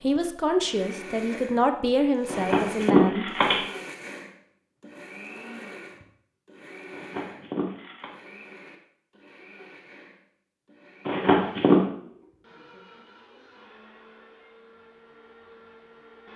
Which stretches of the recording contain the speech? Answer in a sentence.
You can hear the speech from 0.0 to 3.3 s.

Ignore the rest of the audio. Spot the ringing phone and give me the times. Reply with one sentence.
The ringing phone can be heard from 2.2 to 3.6 s, from 6.9 to 8.1 s and from 11.1 to 11.8 s.